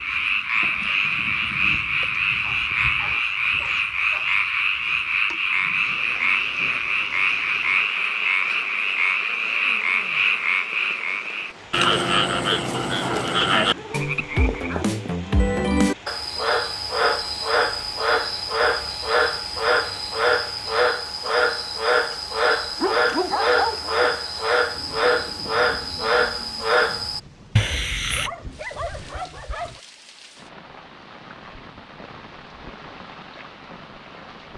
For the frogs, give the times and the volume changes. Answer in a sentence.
You can hear the frogs from 0.0 to 28.3 s, at a steady volume.